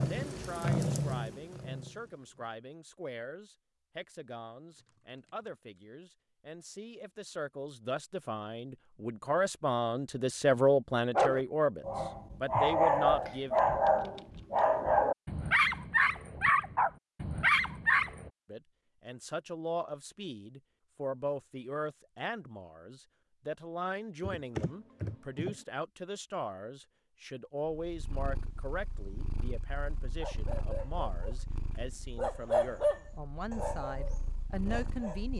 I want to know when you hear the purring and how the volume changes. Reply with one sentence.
You can hear the purring briefly from 0.0 to 2.5 s; and from 27.8 to 35.3 s, getting quieter then louder.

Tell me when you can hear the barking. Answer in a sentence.
The barking can be heard from 11.2 to 18.3 s and from 30.2 to 35.2 s.